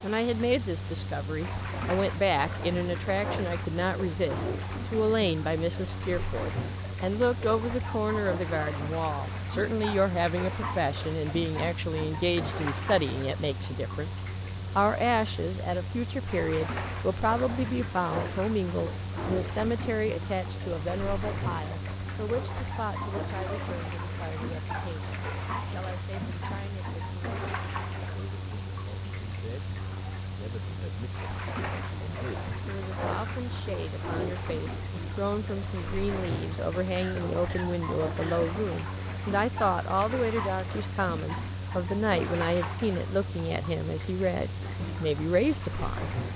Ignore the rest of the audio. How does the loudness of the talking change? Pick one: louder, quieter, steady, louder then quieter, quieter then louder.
quieter then louder.